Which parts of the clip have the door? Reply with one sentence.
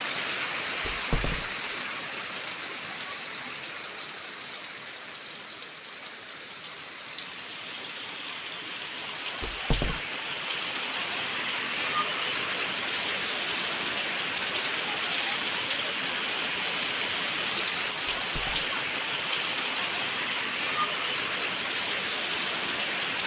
The door can be heard from 0.8 to 1.7 s, from 9.4 to 10.0 s and from 18.1 to 18.7 s.